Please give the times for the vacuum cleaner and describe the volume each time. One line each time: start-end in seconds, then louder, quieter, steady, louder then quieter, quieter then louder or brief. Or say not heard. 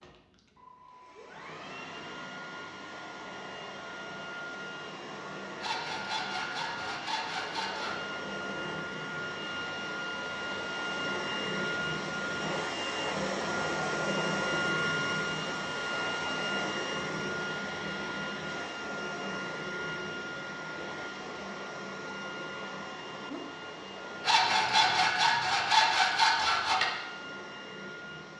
0.0-28.3 louder then quieter.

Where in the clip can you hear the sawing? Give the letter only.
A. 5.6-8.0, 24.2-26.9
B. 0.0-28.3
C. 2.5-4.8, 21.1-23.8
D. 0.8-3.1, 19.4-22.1
A.